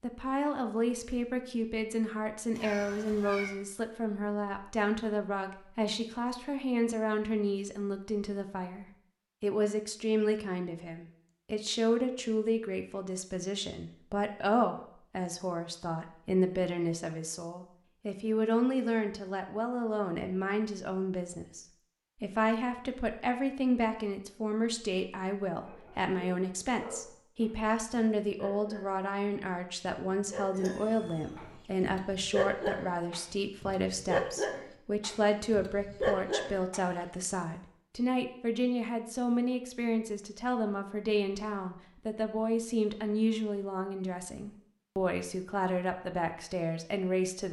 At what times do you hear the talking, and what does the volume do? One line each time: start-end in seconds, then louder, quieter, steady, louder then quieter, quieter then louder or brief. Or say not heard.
0.0-47.4 steady.